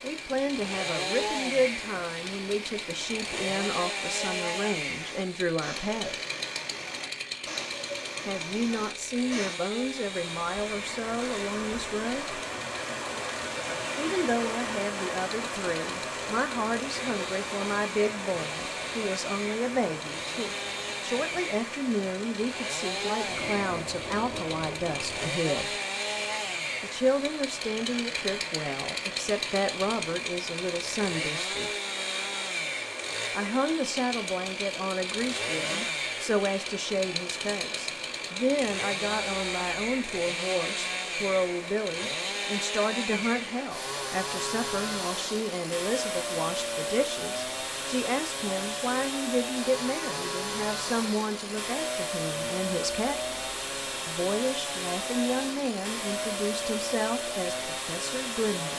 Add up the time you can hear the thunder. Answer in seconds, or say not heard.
2 s.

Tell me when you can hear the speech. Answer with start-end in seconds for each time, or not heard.
0.0-6.2, 8.2-12.3, 13.9-25.7, 26.8-31.7, 33.4-53.2, 54.0-58.7.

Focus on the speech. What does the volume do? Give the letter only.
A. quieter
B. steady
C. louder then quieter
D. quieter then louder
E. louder
B.